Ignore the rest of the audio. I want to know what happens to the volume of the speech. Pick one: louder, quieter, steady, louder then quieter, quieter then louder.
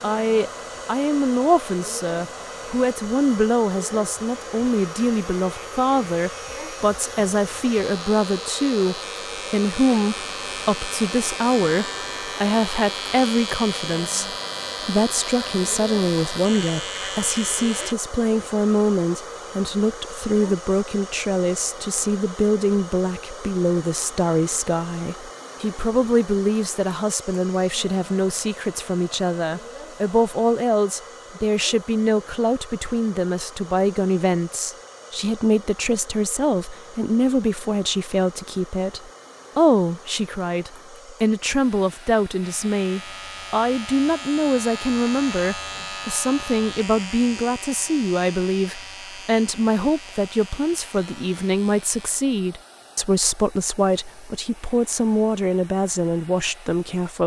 steady.